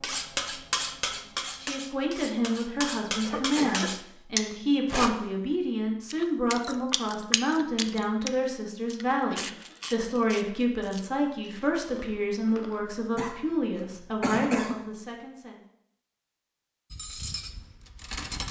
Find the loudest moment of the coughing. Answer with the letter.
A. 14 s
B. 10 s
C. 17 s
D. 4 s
A.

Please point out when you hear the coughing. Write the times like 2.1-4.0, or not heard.
3.2-4.0, 9.3-9.9, 13.2-14.9.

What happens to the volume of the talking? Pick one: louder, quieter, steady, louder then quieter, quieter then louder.
steady.